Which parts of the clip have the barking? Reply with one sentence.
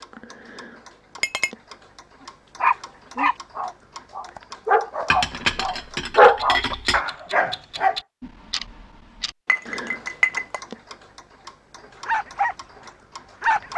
The barking can be heard from 2.6 to 8.0 s and from 12.1 to 13.7 s.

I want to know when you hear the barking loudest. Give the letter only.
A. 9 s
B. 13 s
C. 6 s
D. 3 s
C.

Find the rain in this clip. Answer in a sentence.
The rain can't be heard in this clip.